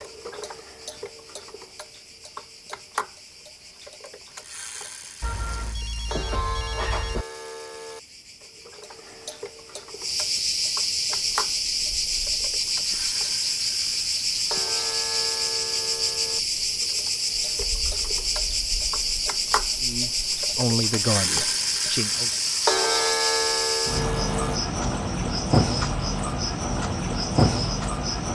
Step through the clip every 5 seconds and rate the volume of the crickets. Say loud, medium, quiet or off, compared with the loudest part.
quiet, quiet, loud, loud, loud, loud.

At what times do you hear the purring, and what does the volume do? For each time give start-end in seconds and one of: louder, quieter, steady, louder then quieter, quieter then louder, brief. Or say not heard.
not heard.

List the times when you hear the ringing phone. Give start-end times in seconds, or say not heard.
5.2-7.2.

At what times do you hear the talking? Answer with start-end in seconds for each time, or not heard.
19.8-22.3.